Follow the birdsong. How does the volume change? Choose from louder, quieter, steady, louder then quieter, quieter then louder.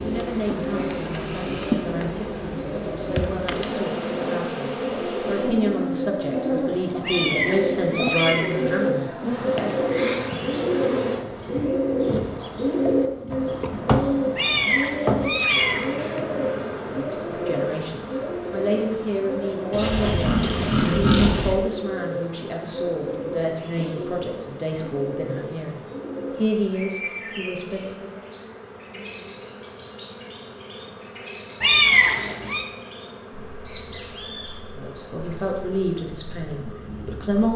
louder then quieter.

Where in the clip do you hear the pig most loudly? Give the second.
21 s.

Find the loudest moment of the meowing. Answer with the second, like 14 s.
32 s.